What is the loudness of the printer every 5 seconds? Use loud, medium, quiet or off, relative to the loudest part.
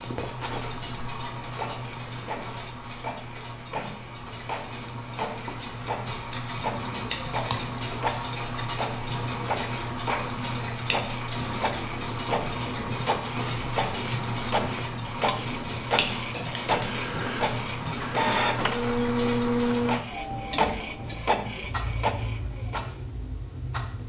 medium, medium, medium, loud, loud.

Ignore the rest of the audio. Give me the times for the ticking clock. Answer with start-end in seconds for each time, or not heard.
0.0-24.0.